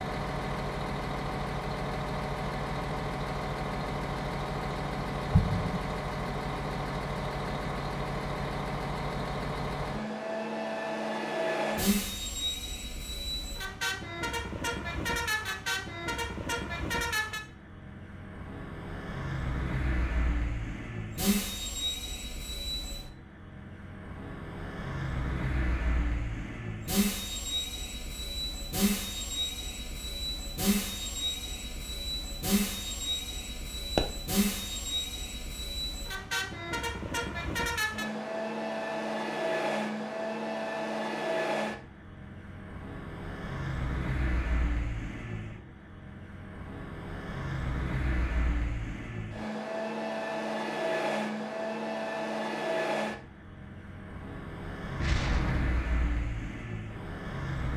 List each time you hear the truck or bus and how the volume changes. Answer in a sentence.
You can hear the truck or bus from 0.0 to 57.7 s, at a steady volume.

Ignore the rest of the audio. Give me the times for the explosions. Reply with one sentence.
You can hear the explosions from 5.3 to 5.9 s and from 55.0 to 55.8 s.